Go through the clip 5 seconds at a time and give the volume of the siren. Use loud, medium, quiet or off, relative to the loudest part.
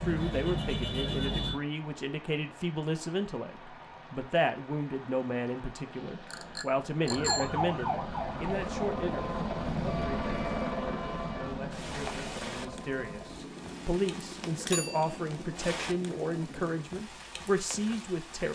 loud, loud, medium, off.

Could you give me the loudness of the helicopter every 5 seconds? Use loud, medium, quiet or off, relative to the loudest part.
off, loud, loud, medium.